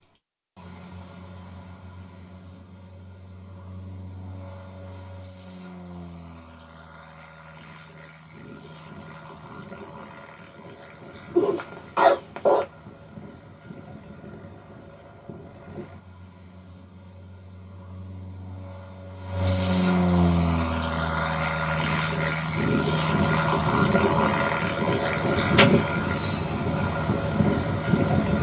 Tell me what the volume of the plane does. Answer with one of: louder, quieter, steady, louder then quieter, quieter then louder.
louder.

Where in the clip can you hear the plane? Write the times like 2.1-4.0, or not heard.
0.0-28.3.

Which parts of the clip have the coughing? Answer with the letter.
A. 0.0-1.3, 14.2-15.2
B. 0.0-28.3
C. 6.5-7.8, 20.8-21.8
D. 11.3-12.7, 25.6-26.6
D.